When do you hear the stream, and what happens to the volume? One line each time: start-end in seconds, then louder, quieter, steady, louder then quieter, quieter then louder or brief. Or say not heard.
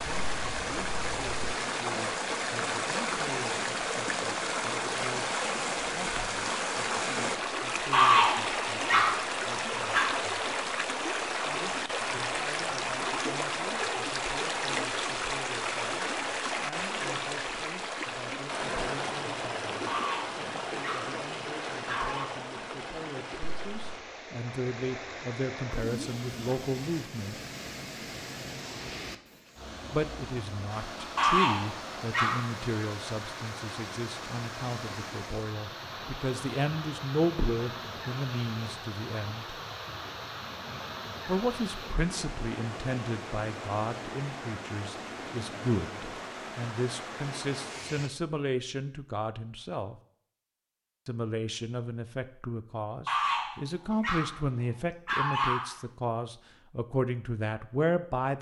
0.0-48.1 quieter.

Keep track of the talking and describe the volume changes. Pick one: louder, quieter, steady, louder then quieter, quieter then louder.
louder.